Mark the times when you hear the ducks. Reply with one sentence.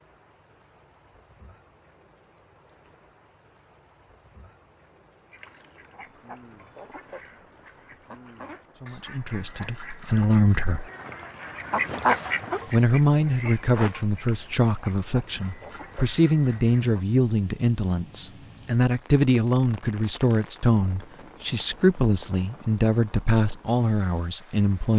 The ducks can be heard from 5.3 to 17.1 s.